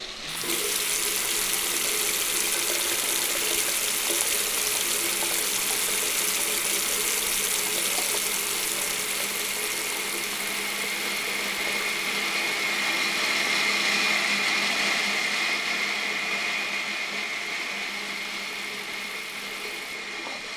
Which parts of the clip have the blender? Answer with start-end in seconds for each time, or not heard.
0.0-20.5.